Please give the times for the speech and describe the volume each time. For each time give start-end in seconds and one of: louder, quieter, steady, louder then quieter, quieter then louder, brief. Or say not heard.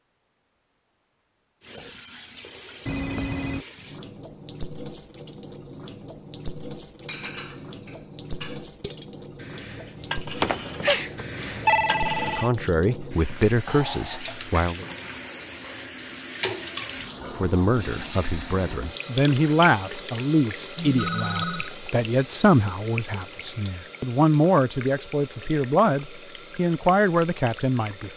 12.2-14.8 brief
17.2-28.1 steady.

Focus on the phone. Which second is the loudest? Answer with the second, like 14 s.
12 s.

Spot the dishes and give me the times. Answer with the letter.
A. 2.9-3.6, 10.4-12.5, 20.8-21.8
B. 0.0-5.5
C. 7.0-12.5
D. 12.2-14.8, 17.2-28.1
C.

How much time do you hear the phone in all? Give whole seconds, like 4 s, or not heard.
4 s.